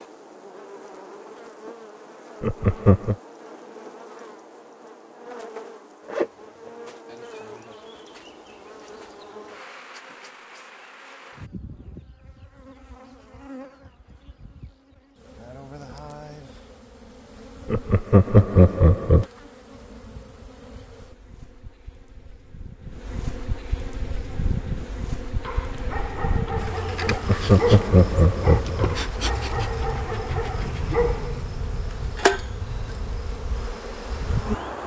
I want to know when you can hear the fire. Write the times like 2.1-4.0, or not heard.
not heard.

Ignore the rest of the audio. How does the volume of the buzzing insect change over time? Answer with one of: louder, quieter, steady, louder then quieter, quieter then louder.
louder.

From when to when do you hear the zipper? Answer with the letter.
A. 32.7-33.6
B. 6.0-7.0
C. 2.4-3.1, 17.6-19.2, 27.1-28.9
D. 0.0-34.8
B.